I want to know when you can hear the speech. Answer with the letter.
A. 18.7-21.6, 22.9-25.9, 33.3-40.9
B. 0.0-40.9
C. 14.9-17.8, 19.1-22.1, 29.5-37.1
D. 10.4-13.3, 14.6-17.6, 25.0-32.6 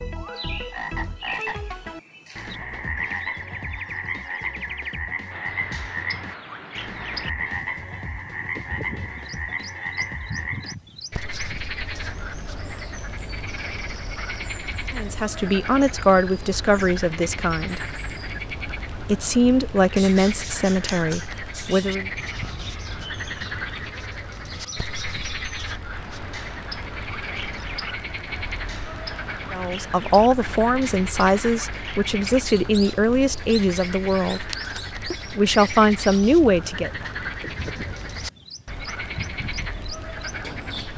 C.